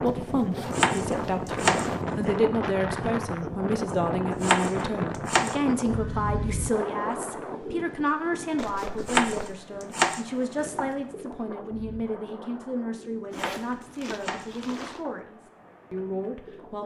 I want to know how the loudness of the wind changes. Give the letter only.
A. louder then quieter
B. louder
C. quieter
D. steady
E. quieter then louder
C.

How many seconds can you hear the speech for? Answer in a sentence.
The speech can be heard for 17 seconds in total.